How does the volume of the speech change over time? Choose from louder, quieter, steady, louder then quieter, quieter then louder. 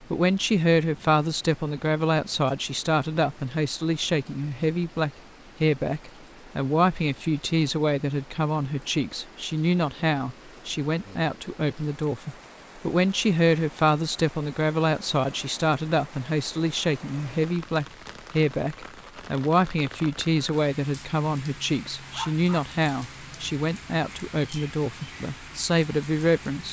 steady.